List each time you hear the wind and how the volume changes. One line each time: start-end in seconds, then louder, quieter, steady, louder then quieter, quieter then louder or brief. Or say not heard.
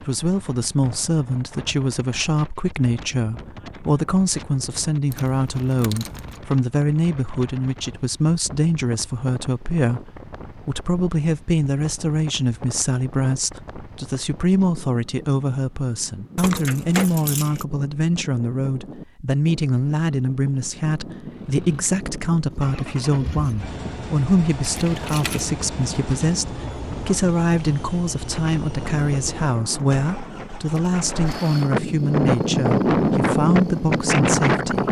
0.0-34.8 louder.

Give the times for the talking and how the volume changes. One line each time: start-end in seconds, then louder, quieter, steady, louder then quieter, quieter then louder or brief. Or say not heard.
0.0-34.8 steady.